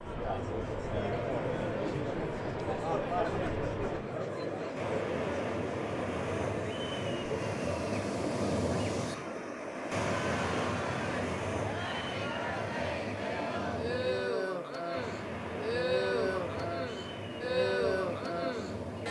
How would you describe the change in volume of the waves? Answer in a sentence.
The loudness of the waves goes up, then down.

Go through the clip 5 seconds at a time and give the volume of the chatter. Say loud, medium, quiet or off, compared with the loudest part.
loud, medium, loud, loud.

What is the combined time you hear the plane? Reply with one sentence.
You can't hear the plane here.